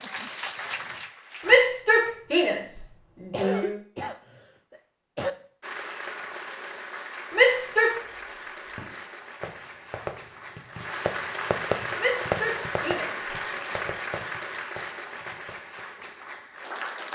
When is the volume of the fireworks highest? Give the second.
12 s.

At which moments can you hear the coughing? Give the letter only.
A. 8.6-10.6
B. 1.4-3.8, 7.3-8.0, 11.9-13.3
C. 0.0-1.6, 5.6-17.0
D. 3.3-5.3
D.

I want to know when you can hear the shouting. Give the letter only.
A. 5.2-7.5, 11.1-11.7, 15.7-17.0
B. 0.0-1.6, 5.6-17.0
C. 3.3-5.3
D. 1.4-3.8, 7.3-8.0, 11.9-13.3
D.